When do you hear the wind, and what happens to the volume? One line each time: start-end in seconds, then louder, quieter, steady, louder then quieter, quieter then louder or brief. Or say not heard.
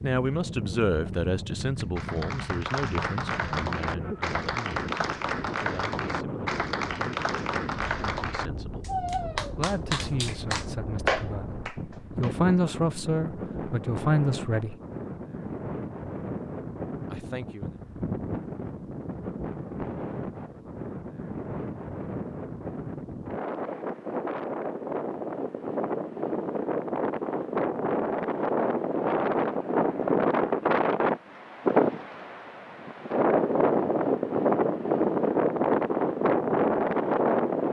0.0-37.6 louder.